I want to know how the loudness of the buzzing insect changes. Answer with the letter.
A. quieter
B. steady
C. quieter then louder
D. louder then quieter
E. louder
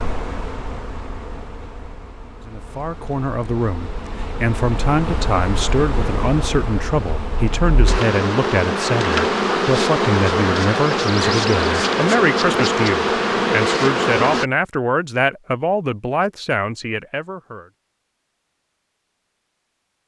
E.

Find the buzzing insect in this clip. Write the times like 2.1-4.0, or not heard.
0.0-14.4.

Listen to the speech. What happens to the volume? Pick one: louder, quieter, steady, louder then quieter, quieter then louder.
steady.